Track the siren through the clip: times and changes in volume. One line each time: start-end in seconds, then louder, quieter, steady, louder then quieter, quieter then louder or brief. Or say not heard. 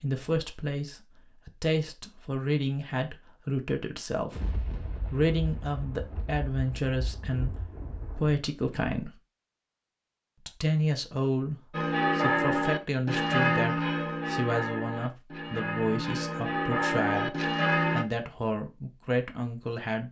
not heard.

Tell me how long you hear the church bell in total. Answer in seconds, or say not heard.
6 s.